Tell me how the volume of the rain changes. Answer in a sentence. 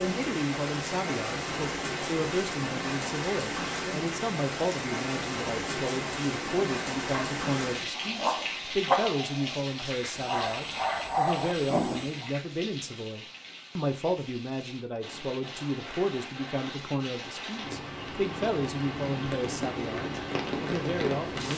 The loudness of the rain goes down, then up.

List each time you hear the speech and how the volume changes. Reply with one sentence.
You can hear the speech from 0.0 to 21.5 s, at a steady volume.